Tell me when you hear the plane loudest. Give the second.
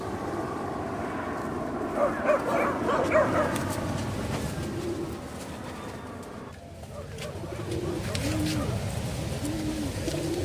3 s.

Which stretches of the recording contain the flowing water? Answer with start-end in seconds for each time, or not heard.
not heard.